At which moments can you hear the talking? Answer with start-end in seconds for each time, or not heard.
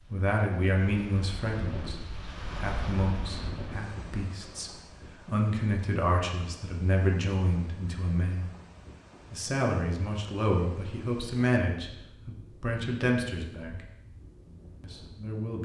0.0-8.5, 9.3-13.8, 14.8-15.6.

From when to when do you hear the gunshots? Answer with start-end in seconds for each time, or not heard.
not heard.